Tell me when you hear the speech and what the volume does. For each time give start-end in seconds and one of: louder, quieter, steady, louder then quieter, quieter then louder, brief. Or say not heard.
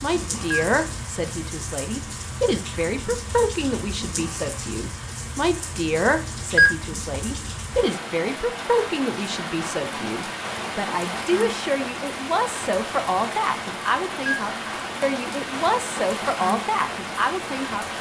0.0-17.9 steady.